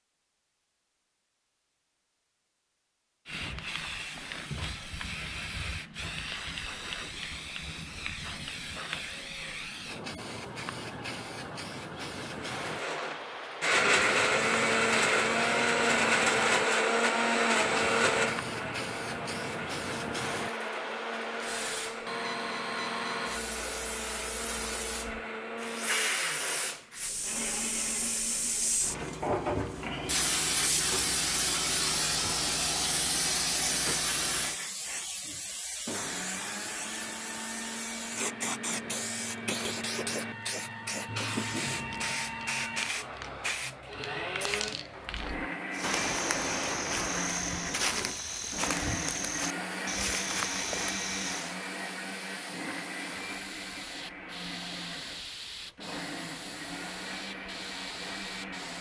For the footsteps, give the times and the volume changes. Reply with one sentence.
The footsteps can be heard from 45.7 to 51.5 s, at a steady volume.